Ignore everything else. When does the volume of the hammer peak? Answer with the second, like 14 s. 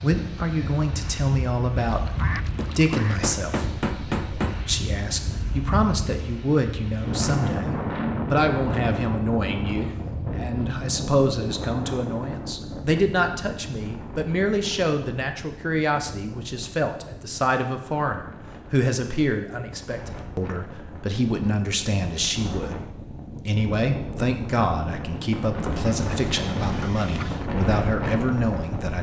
4 s.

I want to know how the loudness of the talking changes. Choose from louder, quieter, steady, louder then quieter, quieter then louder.
steady.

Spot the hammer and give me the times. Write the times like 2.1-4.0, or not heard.
2.5-4.5.